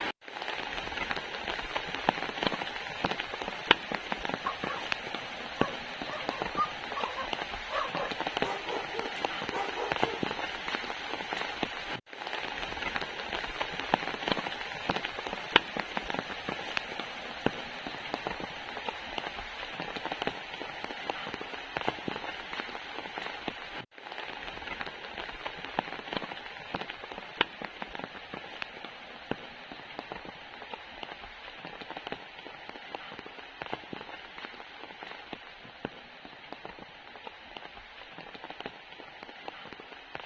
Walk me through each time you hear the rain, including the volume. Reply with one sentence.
The rain can be heard from 0.0 to 40.2 s, getting quieter.